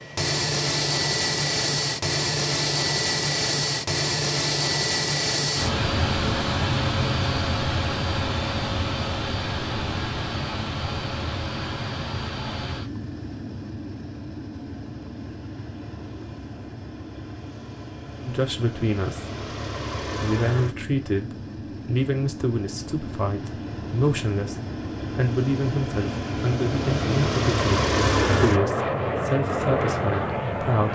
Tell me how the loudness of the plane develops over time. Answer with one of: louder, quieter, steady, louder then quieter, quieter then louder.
quieter then louder.